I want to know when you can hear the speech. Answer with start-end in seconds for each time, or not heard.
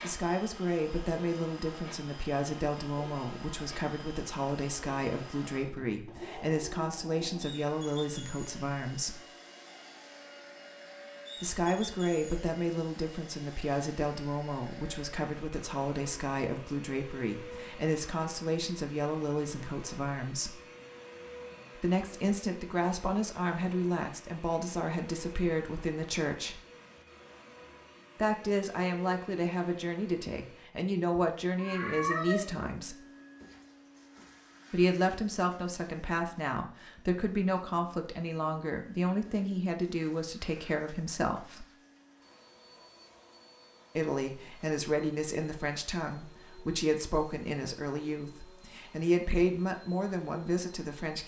0.0-9.2, 11.4-20.6, 21.8-26.6, 28.1-33.0, 34.7-41.6, 44.0-51.2.